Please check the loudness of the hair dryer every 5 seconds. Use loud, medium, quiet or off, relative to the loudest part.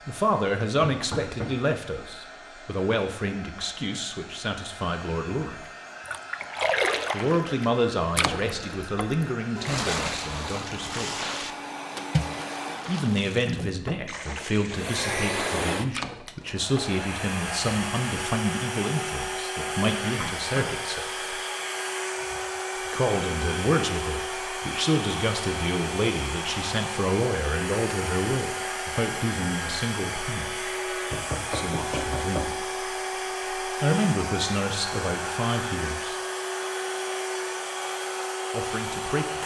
quiet, medium, medium, loud, loud, loud, loud, loud.